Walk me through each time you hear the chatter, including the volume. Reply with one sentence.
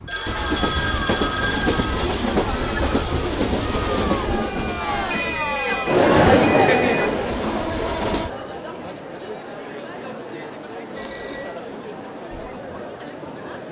The chatter can be heard from 0.1 to 13.6 s, getting louder then quieter.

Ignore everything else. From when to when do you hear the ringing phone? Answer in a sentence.
The ringing phone can be heard from 0.1 to 2.1 s, from 5.1 to 7.0 s and from 10.9 to 11.6 s.